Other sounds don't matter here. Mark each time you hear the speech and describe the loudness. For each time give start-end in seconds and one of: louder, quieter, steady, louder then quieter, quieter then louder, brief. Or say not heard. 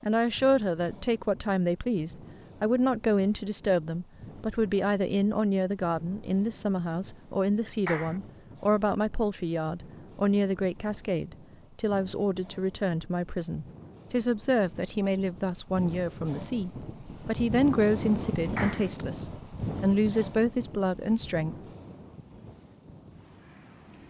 0.0-21.6 steady.